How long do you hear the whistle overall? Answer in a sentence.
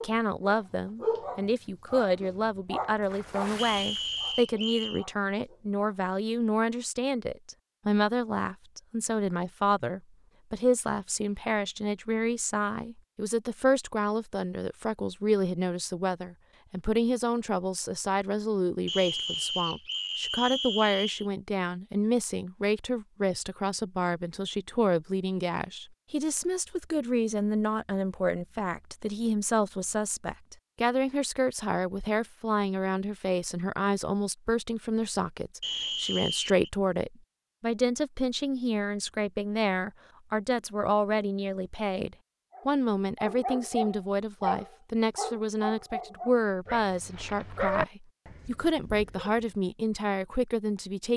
You can hear the whistle for 5 seconds altogether.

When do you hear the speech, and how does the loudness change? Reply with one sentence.
You can hear the speech from 0.0 to 51.1 s, at a steady volume.